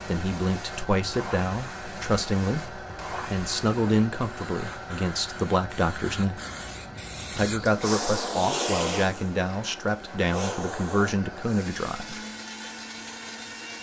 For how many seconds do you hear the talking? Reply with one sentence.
You can hear the talking for 11 seconds altogether.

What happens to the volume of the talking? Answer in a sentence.
The volume of the talking stays about the same.